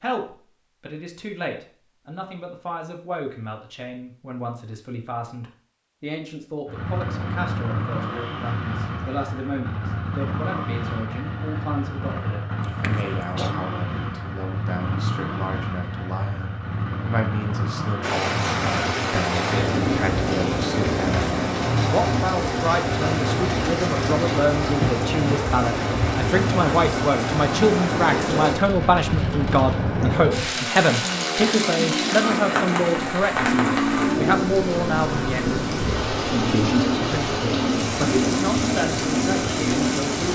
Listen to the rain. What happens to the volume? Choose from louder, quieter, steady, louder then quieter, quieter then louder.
steady.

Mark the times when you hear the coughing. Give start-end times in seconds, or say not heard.
12.6-13.6.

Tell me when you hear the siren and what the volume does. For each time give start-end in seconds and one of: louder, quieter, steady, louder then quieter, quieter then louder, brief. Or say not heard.
not heard.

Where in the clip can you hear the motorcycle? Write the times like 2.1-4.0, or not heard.
6.7-40.0.